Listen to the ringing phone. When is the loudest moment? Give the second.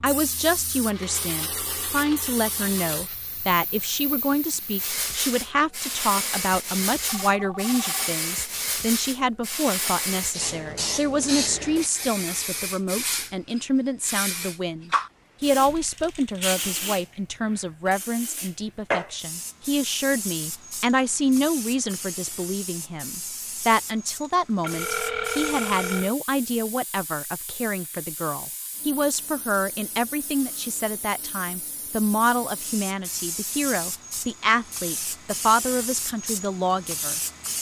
25 s.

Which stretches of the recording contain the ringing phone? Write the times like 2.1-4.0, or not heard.
7.0-8.1, 24.6-26.1.